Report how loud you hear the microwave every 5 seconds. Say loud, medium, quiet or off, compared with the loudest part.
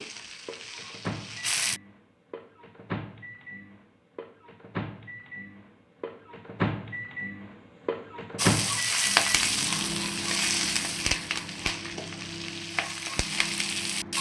medium, loud, medium.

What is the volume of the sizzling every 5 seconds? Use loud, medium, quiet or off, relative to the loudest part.
medium, loud, medium.